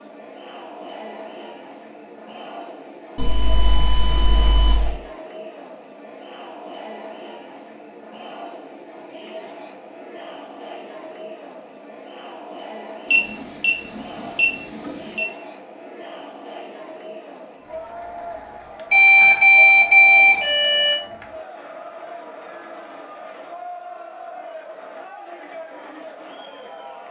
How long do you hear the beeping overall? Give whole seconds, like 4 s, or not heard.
6 s.